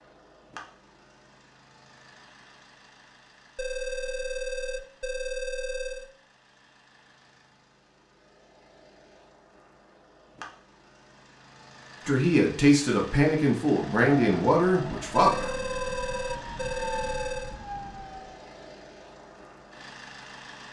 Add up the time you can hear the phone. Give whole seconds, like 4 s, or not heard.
5 s.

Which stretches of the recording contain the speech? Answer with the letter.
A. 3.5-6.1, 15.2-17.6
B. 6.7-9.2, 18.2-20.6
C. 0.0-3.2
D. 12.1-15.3
D.